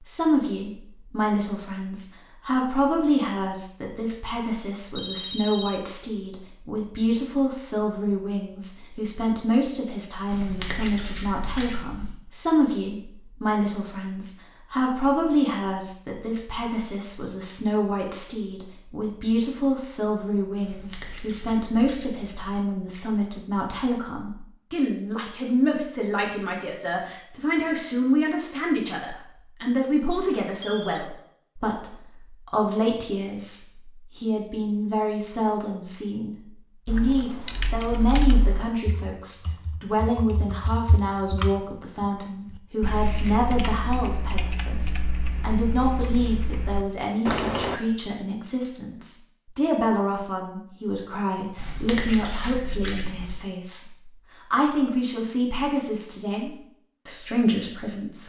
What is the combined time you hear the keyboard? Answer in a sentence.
The keyboard can be heard for 11 seconds in total.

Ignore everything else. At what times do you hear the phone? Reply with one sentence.
The phone can be heard from 5.0 to 5.8 s and from 30.1 to 31.1 s.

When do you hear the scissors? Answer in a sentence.
The scissors can be heard from 10.3 to 12.2 s, from 20.6 to 22.6 s and from 51.5 to 53.4 s.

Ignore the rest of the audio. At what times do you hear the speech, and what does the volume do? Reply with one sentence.
You can hear the speech from 0.0 to 58.2 s, at a steady volume.